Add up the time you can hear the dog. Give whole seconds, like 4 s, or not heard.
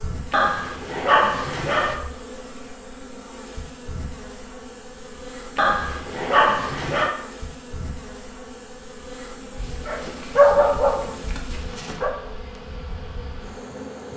6 s.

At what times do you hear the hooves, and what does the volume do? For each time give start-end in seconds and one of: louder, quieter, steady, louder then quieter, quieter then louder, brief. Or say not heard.
not heard.